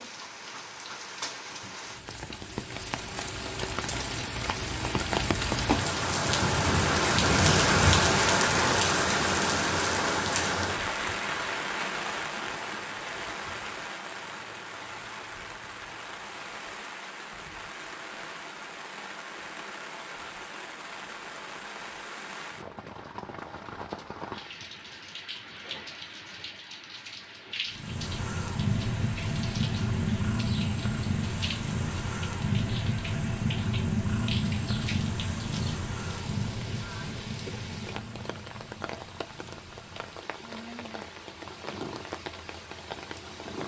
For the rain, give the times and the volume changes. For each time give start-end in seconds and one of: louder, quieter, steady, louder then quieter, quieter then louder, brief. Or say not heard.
0.0-43.6 quieter.